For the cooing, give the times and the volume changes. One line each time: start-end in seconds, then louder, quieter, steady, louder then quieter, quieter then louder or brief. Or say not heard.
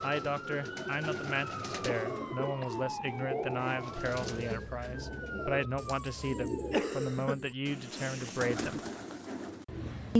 0.0-10.1 steady.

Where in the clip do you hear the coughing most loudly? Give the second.
7 s.